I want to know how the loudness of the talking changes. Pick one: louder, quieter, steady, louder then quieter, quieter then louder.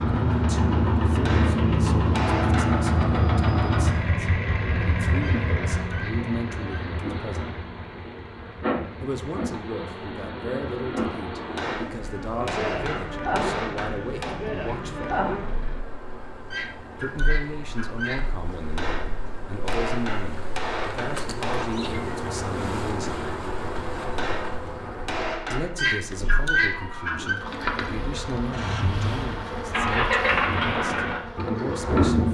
steady.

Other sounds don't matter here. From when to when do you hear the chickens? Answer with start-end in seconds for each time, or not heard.
5.2-6.9, 16.5-18.3, 25.8-27.4.